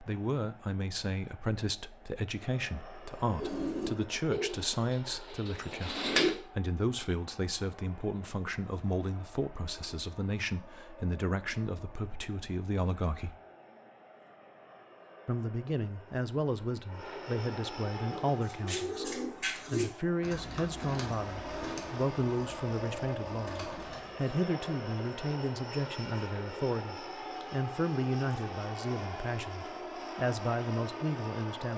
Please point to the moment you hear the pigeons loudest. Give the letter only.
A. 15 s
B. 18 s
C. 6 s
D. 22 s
C.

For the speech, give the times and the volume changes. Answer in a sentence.
You can hear the speech from 0.0 to 13.3 s, at a steady volume; and from 15.2 to 31.7 s, at a steady volume.